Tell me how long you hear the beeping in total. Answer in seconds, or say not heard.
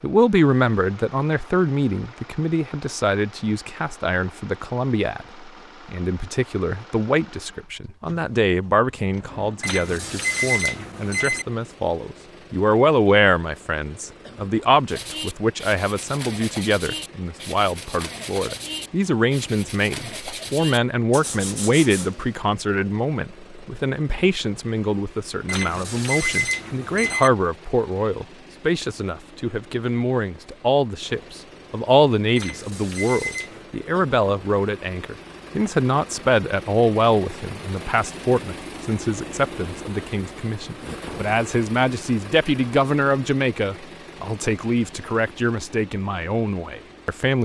5 s.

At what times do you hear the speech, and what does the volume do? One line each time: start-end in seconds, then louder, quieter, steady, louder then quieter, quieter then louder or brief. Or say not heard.
0.0-47.3 steady.